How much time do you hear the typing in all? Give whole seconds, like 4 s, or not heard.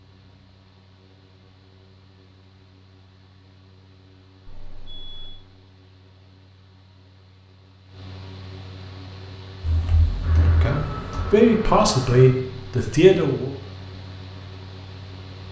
2 s.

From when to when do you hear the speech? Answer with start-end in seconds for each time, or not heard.
10.3-13.5.